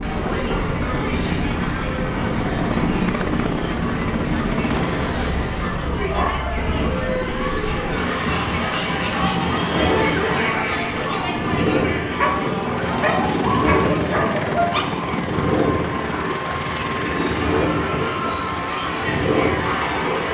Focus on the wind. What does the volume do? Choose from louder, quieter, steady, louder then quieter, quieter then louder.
steady.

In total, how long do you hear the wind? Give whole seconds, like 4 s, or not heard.
20 s.